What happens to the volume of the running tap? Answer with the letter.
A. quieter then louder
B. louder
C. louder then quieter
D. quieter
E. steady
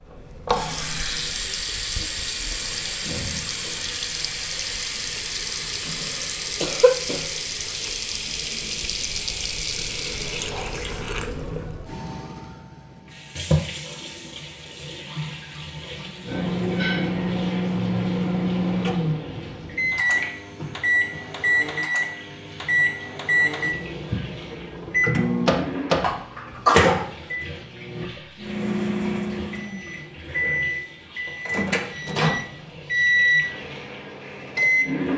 D.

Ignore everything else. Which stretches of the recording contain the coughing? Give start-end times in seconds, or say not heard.
6.6-7.2, 15.9-17.1, 26.0-27.1.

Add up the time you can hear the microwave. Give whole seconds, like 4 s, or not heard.
19 s.